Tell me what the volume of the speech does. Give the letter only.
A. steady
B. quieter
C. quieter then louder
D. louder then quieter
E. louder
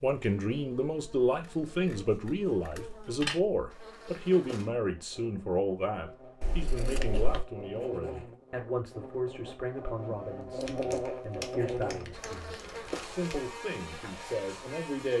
B.